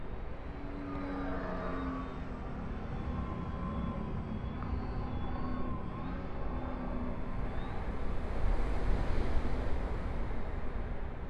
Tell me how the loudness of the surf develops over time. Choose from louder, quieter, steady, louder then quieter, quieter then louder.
louder.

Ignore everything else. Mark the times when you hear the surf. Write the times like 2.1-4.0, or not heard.
0.0-11.2.